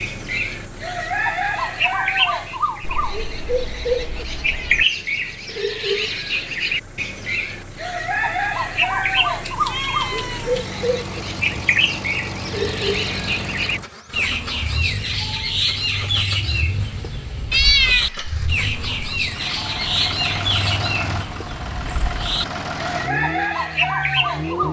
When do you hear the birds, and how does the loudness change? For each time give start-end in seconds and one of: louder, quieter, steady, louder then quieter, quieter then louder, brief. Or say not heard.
0.0-24.6 steady.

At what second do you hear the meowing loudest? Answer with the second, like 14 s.
18 s.